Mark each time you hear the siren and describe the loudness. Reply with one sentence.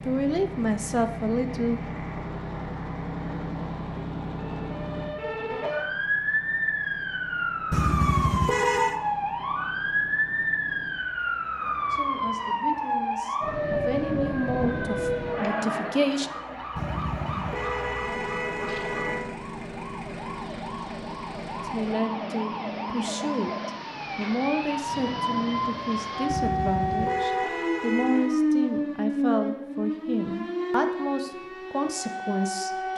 You can hear the siren from 4.3 to 32.9 s, getting quieter then louder.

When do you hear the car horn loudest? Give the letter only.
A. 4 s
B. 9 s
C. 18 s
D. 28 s
B.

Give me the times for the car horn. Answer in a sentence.
The car horn can be heard from 7.7 to 9.0 s, from 16.8 to 19.2 s and from 26.3 to 28.4 s.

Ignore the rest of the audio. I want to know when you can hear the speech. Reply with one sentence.
The speech can be heard from 0.1 to 1.8 s, from 11.9 to 16.3 s and from 21.6 to 32.9 s.